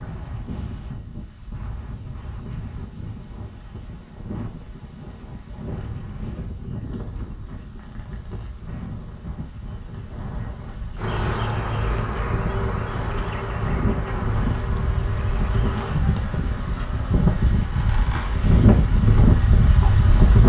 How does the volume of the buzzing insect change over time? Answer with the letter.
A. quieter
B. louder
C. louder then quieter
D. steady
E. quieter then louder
A.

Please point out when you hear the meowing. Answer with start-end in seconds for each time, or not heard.
not heard.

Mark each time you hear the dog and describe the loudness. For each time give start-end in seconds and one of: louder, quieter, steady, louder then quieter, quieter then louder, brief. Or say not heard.
not heard.